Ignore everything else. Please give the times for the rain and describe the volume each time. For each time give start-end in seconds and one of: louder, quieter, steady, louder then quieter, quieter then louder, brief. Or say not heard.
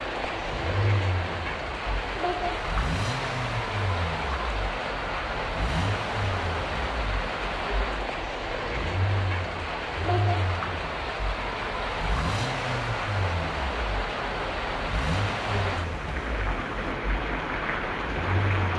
0.0-18.7 steady.